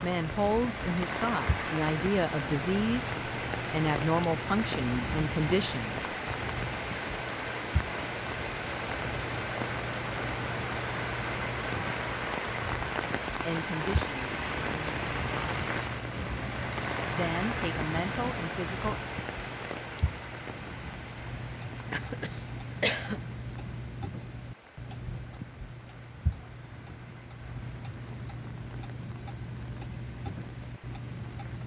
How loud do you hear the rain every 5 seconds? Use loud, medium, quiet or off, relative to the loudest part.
loud, loud, loud, loud, quiet, quiet, quiet.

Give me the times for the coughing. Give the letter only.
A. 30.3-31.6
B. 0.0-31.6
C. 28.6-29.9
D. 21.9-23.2
D.